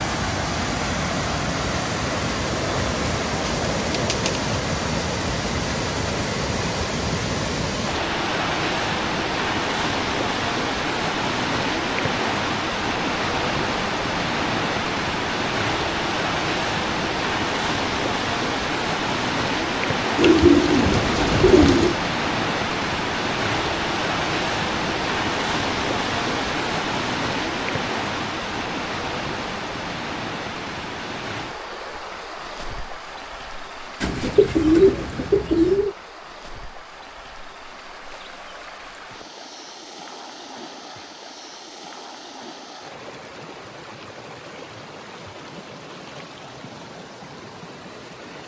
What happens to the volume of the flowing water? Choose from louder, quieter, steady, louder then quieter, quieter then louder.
quieter.